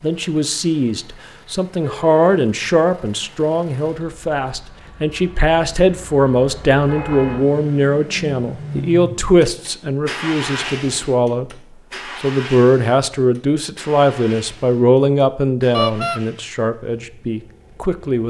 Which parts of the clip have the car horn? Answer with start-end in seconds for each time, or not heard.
1.8-2.4, 6.8-7.6, 15.7-16.2.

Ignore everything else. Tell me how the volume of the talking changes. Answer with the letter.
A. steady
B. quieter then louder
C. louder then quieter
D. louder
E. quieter
A.